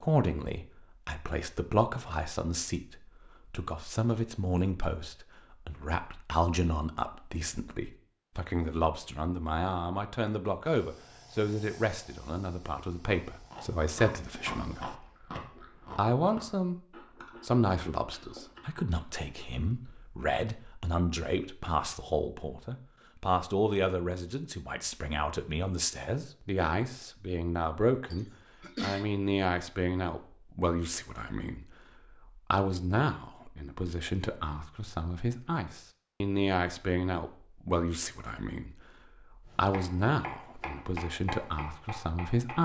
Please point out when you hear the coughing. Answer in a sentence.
You can hear the coughing from 28.1 to 29.1 s.